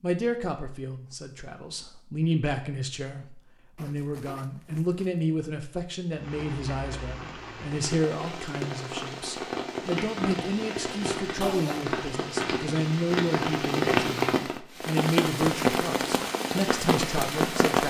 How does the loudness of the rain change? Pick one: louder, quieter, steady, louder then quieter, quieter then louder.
louder.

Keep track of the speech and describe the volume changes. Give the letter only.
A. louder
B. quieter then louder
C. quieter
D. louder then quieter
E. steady
E.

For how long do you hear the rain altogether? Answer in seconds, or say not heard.
12 s.